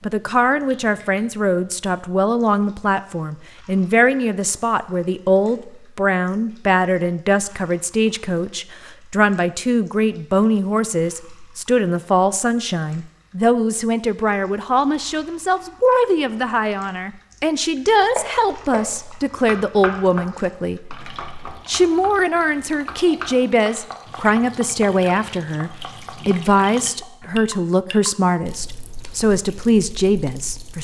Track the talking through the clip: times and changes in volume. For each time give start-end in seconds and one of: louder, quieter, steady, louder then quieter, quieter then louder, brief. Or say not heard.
0.0-30.8 steady.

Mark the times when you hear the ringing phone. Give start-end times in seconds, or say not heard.
not heard.